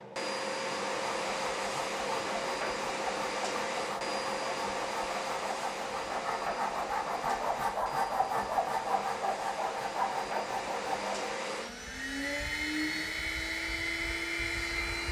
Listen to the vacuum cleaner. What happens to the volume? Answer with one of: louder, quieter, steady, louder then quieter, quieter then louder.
quieter then louder.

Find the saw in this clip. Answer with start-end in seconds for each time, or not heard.
0.9-11.4.